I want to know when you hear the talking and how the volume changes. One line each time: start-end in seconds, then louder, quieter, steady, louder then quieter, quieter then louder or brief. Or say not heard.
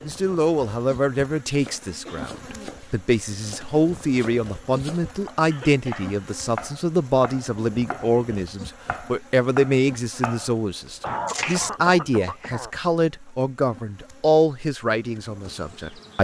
0.1-16.1 steady.